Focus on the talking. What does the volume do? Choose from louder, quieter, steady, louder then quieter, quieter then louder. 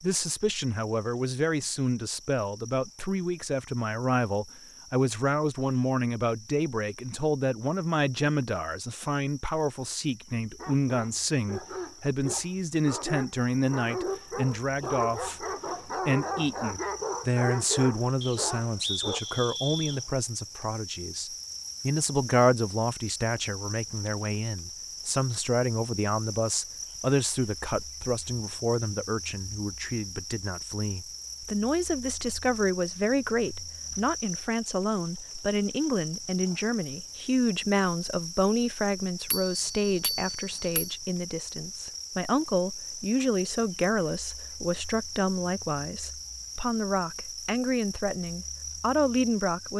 steady.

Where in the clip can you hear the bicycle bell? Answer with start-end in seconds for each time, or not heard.
39.3-40.9.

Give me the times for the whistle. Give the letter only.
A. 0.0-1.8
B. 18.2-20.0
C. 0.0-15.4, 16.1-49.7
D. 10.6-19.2
B.